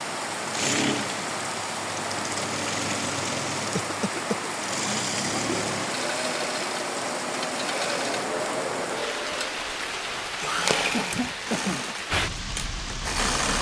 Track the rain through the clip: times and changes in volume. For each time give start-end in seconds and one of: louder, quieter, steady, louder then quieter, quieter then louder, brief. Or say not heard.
0.0-13.5 steady.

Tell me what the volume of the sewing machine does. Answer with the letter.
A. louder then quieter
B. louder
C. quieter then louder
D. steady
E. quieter
D.